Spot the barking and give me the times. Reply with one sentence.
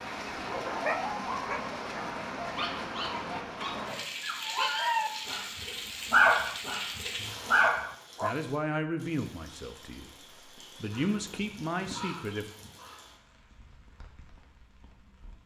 The barking can be heard from 0.5 to 8.3 s.